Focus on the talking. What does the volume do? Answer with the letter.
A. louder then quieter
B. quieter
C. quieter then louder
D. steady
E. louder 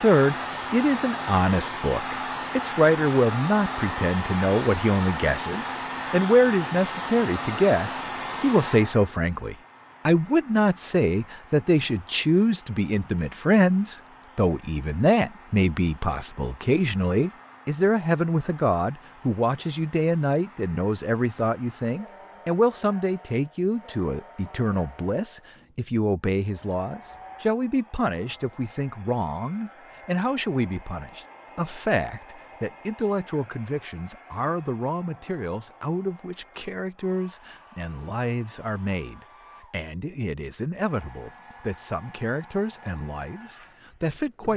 B.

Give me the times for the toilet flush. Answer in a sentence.
You can't hear the toilet flush here.